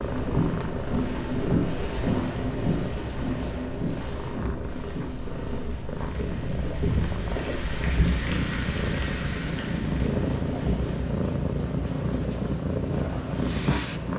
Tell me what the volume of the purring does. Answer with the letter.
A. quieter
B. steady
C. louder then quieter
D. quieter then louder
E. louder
E.